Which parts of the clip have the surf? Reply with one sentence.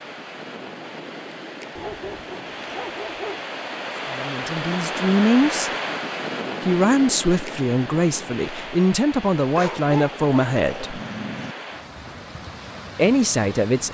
You can hear the surf from 0.0 to 13.8 s.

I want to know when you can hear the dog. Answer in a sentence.
You can hear the dog from 1.8 to 3.4 s and from 9.5 to 11.6 s.